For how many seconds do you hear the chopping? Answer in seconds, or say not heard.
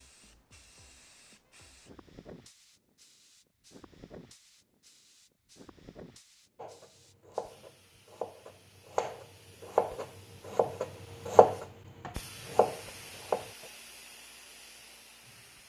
7 s.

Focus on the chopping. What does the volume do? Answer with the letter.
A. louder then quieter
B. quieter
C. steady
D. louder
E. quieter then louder
A.